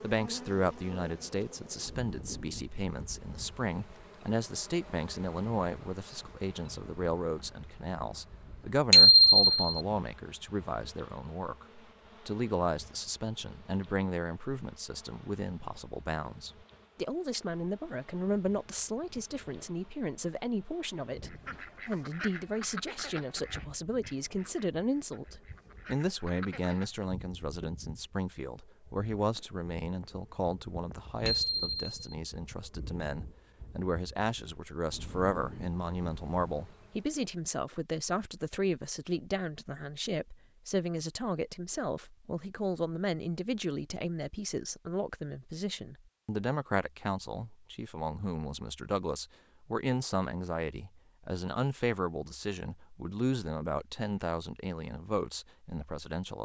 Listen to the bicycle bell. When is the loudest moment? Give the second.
9 s.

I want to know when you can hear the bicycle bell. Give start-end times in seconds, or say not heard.
8.9-9.8, 31.2-31.9.